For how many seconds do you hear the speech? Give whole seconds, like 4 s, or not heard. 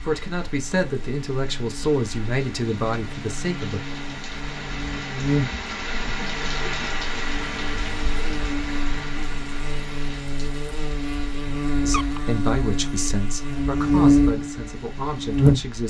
8 s.